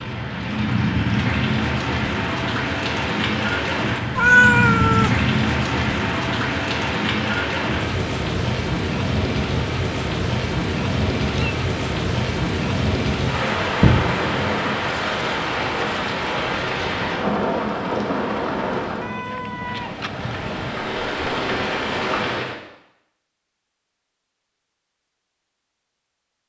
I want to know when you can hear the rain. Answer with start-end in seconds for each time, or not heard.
0.0-22.6.